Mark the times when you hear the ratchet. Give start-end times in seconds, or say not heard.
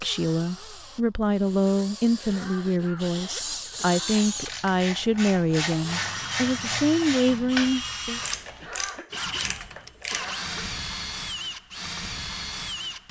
3.7-10.3.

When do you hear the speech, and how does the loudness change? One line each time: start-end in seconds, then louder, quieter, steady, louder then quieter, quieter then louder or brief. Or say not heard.
0.0-8.2 steady.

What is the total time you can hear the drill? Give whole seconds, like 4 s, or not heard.
13 s.